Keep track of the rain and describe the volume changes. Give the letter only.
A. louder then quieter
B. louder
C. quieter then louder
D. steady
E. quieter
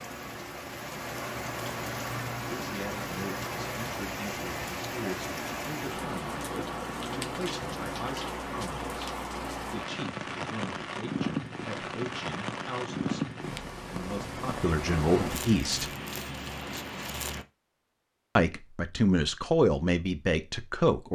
D.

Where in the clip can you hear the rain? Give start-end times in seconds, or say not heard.
0.0-17.4.